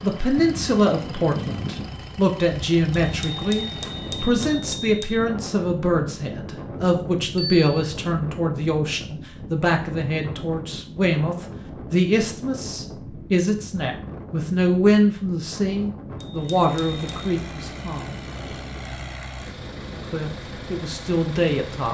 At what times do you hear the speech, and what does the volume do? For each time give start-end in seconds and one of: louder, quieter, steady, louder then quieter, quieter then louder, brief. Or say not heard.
0.0-18.1 steady
20.1-21.8 brief.